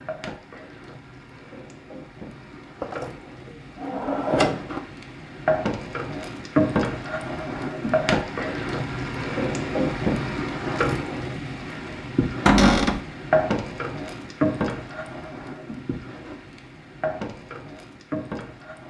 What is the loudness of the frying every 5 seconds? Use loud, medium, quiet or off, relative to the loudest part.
quiet, loud, loud, medium.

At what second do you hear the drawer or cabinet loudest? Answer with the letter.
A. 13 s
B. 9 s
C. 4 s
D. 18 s
A.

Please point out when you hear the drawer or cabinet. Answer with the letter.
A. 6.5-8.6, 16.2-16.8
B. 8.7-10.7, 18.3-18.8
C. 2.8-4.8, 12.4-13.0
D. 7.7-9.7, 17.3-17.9
C.